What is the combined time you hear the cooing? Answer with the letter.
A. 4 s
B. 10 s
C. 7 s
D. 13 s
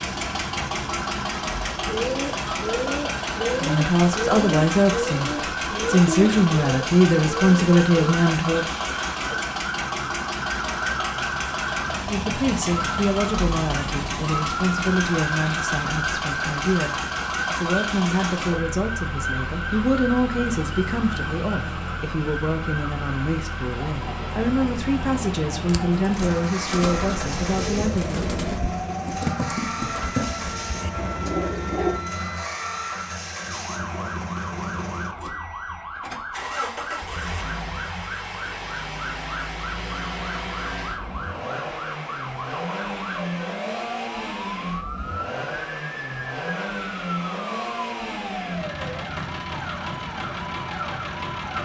D.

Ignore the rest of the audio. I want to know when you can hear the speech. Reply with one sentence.
The speech can be heard from 3.6 to 8.7 s and from 12.1 to 28.2 s.